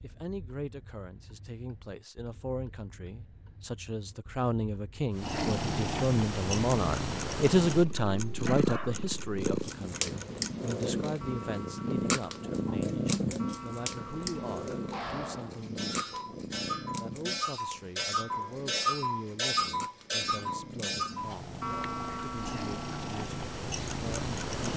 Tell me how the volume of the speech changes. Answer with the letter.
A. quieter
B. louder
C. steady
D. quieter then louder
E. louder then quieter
E.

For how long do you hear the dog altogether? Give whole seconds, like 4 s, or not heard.
2 s.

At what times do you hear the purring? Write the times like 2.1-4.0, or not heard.
5.1-24.7.